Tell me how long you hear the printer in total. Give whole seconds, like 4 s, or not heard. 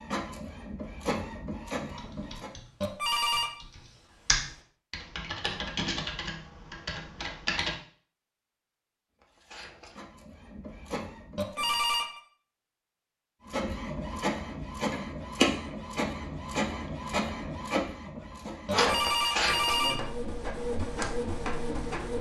14 s.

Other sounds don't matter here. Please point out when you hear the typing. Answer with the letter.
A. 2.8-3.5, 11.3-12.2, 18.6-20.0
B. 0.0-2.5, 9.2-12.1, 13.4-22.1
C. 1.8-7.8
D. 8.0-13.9
C.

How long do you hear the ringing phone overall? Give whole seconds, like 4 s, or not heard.
3 s.